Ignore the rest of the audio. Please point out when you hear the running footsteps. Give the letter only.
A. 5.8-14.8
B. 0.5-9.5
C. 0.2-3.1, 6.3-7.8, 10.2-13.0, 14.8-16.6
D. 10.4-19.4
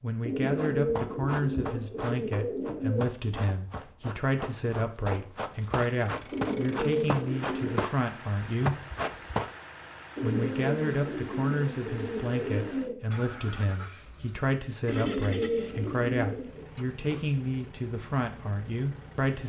B.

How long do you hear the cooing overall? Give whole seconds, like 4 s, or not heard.
9 s.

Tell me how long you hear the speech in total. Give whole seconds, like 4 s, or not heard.
18 s.